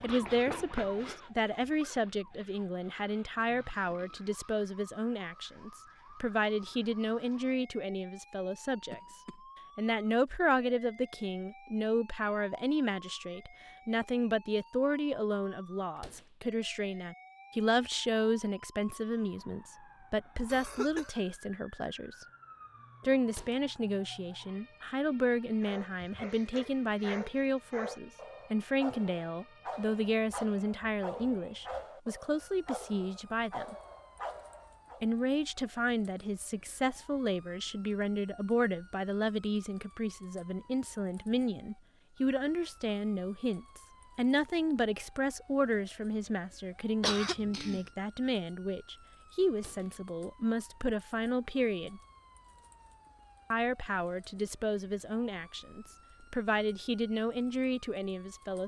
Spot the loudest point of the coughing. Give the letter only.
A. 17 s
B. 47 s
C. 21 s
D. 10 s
B.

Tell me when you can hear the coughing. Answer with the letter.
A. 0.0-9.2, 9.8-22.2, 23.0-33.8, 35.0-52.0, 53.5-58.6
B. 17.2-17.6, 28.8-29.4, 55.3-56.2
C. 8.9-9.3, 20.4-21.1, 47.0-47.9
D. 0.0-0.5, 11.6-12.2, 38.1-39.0
C.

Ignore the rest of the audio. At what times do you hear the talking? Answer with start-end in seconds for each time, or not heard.
0.0-9.2, 9.8-22.2, 23.0-33.8, 35.0-52.0, 53.5-58.6.